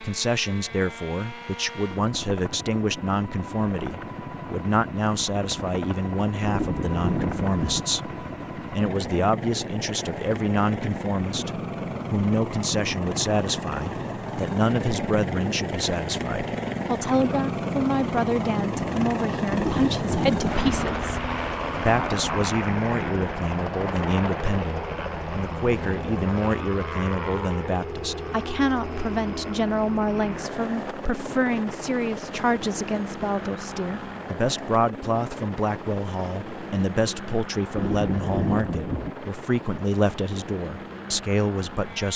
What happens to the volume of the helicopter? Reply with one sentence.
The loudness of the helicopter goes up, then down.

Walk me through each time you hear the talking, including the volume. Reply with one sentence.
You can hear the talking from 0.0 to 42.1 s, at a steady volume.